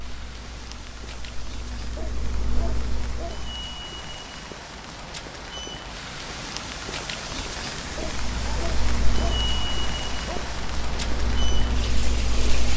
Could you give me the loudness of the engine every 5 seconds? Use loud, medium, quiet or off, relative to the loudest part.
medium, loud, loud.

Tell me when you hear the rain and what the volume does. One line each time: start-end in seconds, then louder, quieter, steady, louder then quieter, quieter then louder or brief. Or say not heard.
0.0-12.7 louder.